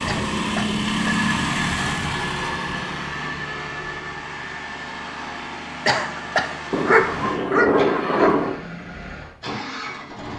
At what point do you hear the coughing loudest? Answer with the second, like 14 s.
6 s.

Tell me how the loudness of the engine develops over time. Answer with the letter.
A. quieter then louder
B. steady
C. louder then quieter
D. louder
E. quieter
E.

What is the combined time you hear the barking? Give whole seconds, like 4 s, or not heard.
2 s.